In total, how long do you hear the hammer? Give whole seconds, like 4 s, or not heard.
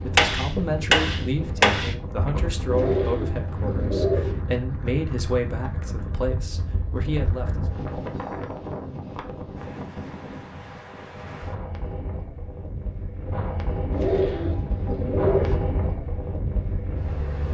2 s.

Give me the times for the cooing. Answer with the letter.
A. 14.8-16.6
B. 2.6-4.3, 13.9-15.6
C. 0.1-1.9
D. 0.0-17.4
B.